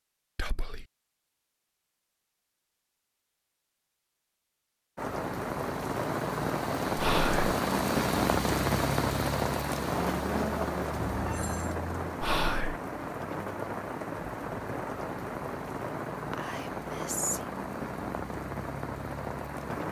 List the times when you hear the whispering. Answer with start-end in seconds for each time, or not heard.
0.3-0.8, 7.0-7.5, 12.2-12.8, 16.3-17.4.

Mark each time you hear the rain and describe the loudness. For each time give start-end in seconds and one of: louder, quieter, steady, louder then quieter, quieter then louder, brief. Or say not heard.
5.0-19.8 quieter.